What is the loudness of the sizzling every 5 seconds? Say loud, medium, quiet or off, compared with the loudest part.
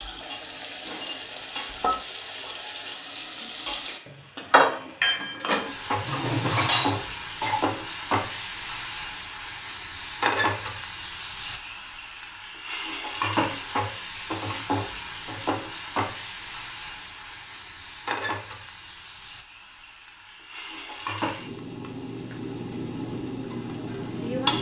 loud, loud, loud, medium, loud.